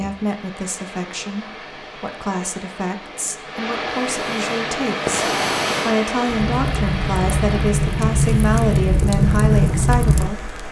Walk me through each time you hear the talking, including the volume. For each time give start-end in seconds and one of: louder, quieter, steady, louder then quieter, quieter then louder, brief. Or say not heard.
0.0-10.6 louder.